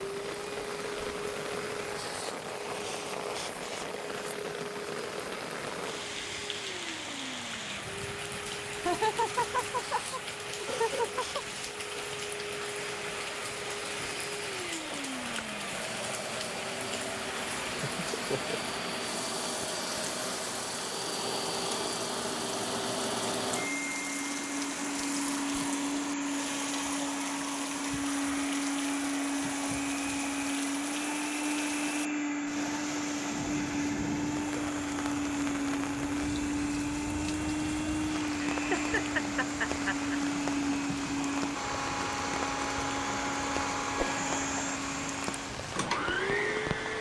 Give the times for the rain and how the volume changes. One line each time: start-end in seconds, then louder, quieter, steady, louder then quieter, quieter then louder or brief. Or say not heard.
0.0-46.9 steady.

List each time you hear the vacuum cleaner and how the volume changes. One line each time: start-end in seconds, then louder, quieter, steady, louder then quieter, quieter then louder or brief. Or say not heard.
0.0-46.9 louder.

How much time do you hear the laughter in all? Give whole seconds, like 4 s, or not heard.
5 s.